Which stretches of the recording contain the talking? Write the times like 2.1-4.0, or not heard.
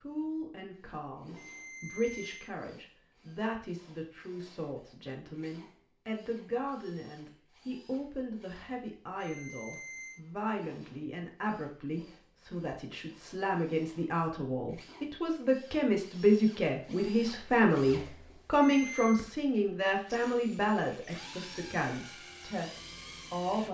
0.0-23.6.